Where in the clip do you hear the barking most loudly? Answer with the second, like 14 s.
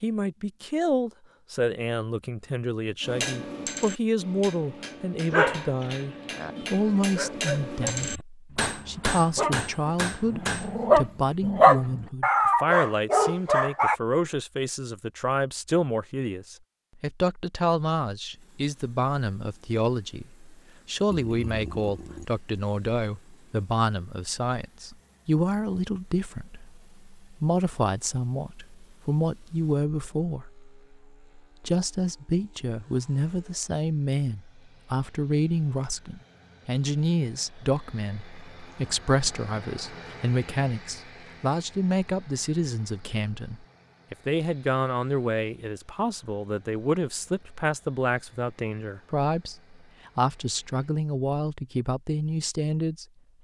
12 s.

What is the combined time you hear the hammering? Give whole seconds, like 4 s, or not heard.
8 s.